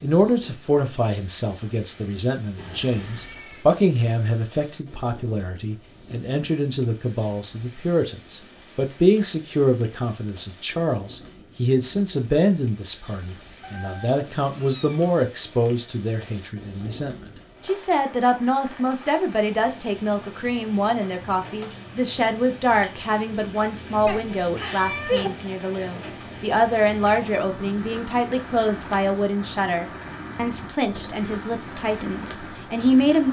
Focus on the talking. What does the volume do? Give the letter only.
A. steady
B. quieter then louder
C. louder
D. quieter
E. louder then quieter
A.